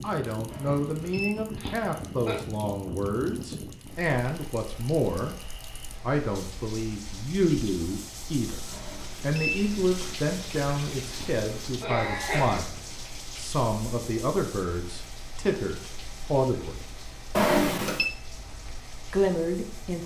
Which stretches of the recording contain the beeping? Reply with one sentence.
You can hear the beeping from 0.5 to 1.4 s, from 8.7 to 10.2 s and from 17.4 to 18.1 s.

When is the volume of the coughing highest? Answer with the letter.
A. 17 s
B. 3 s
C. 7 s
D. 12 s
D.